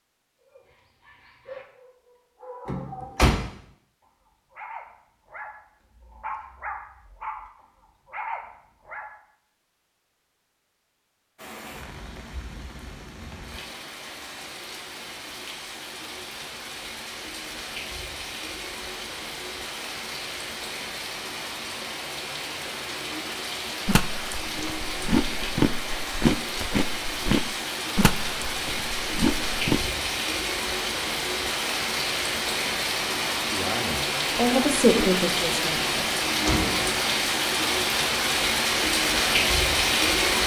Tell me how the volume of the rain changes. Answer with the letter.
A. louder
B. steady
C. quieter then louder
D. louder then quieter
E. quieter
A.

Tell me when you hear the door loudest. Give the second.
3 s.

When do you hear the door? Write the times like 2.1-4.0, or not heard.
2.6-3.4, 35.9-36.9.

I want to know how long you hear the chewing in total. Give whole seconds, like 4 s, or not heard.
6 s.